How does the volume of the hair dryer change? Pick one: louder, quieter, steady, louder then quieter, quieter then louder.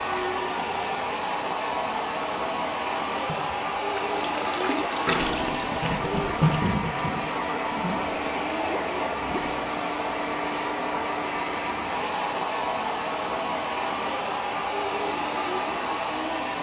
steady.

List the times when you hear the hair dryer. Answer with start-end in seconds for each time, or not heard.
0.0-16.5.